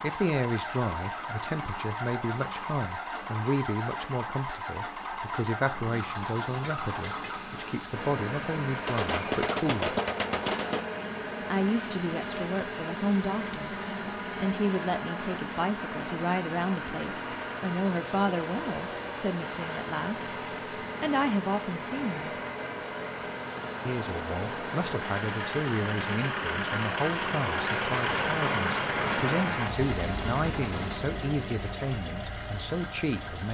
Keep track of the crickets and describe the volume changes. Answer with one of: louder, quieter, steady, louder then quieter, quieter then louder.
louder.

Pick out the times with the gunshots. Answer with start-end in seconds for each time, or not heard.
8.8-10.8, 28.9-30.9.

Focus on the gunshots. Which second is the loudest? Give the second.
10 s.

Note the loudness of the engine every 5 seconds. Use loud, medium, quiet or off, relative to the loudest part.
medium, medium, medium, medium, medium, loud, medium.